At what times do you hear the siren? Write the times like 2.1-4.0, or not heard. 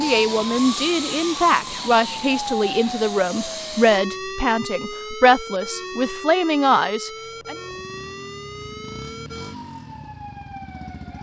0.0-11.1.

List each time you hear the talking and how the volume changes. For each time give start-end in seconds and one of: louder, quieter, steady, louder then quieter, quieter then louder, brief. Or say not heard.
0.0-7.5 steady.